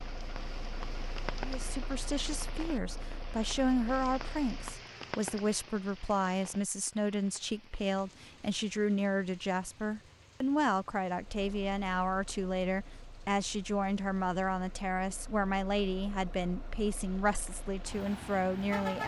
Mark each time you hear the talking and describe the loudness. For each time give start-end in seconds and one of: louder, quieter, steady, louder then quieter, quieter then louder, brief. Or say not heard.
1.4-19.0 steady.